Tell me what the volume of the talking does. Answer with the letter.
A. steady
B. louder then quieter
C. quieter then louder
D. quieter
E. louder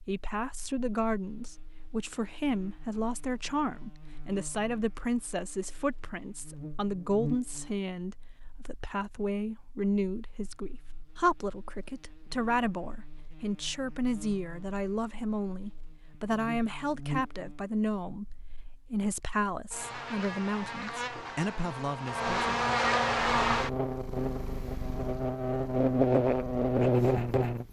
A.